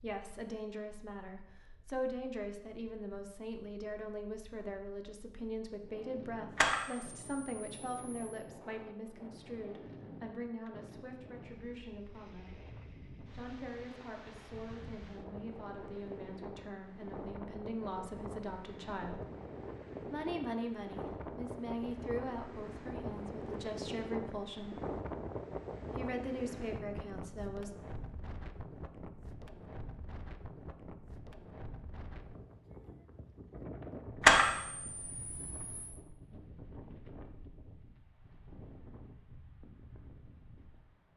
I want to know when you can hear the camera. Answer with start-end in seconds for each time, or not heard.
6.5-8.4, 34.2-36.0.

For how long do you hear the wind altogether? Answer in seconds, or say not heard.
41 s.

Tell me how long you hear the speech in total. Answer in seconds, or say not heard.
25 s.